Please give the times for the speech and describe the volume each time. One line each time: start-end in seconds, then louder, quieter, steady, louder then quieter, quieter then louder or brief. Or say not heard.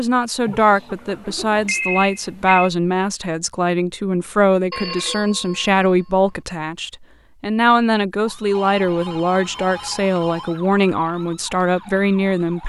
0.0-12.6 steady.